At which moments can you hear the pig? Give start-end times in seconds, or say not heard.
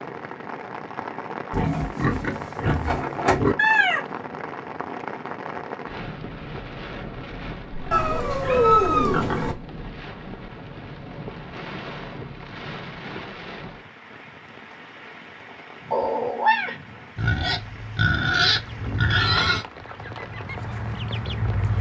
1.5-3.5, 7.7-9.7, 17.1-19.6.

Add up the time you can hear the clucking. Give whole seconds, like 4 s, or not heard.
3 s.